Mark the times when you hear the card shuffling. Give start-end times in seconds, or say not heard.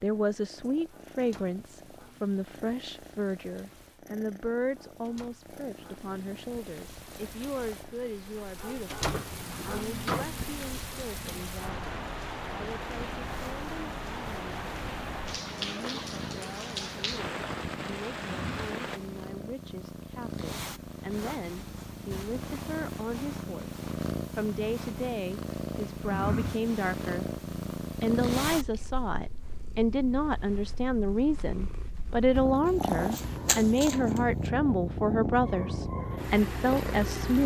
32.6-34.2.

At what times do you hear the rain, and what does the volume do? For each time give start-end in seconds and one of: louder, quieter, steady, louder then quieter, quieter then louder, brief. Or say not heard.
0.0-19.0 louder.